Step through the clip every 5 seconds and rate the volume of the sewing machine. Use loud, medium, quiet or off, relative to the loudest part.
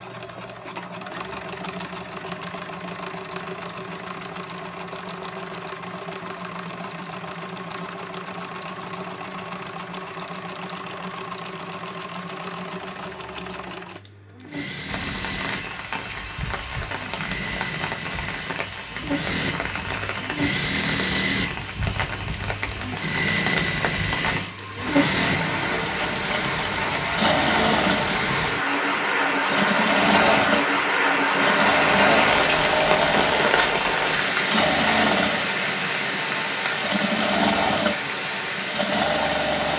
medium, medium, medium, medium, loud, loud, loud, loud.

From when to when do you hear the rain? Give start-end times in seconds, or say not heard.
14.8-39.7.